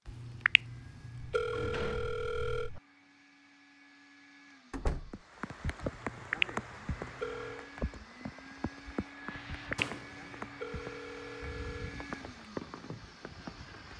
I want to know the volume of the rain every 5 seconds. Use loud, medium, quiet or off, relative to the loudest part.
off, loud, loud.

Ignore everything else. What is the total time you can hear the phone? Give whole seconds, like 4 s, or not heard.
7 s.